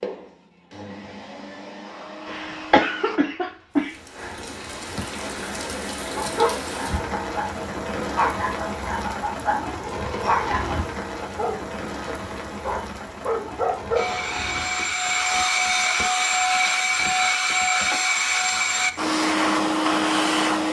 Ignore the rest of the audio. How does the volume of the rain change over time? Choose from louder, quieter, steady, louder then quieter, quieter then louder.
quieter.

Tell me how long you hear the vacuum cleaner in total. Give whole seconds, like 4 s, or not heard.
10 s.